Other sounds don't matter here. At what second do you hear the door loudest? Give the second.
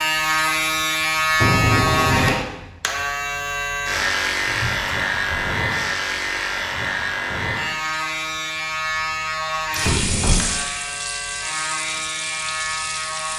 2 s.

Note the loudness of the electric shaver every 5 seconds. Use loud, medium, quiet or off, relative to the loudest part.
loud, loud, medium.